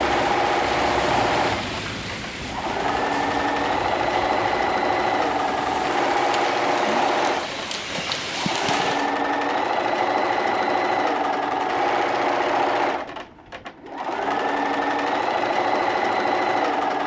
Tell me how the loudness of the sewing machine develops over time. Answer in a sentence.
The loudness of the sewing machine stays about the same.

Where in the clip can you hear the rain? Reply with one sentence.
You can hear the rain from 0.0 to 9.2 s.